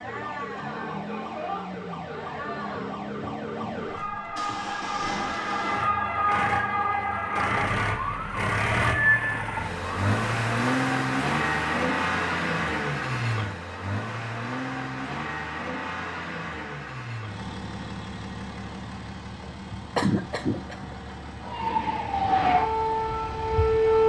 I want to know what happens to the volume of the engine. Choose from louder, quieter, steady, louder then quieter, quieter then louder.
louder then quieter.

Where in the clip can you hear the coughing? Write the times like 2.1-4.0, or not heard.
19.9-21.1.